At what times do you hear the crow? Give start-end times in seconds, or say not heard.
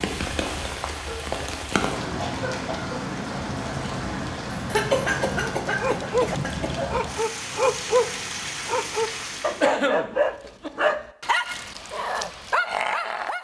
not heard.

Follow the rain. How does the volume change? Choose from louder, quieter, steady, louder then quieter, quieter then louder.
steady.